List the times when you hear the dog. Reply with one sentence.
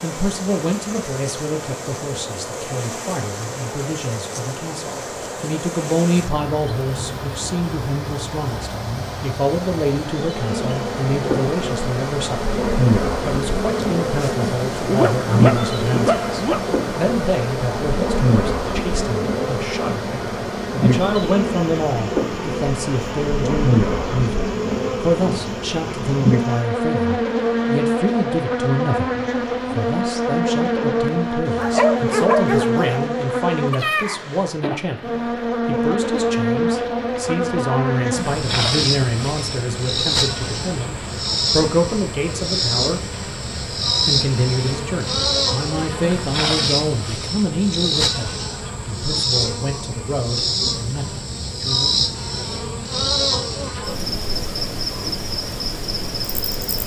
The dog can be heard from 14.2 to 16.6 s and from 31.6 to 33.0 s.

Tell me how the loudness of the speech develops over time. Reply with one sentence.
The loudness of the speech stays about the same.